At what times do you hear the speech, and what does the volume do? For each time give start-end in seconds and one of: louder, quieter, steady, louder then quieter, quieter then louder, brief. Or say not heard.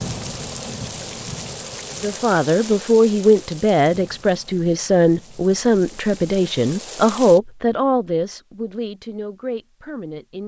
2.0-10.4 quieter.